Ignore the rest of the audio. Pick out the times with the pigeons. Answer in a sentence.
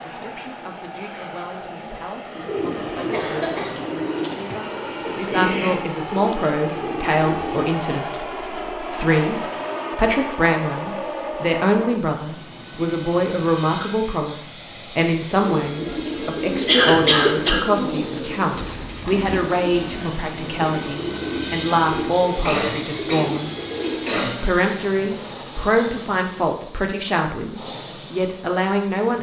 The pigeons can be heard from 2.4 to 7.8 s and from 15.3 to 24.2 s.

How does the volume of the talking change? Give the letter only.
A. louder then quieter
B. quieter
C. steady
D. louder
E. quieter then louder
D.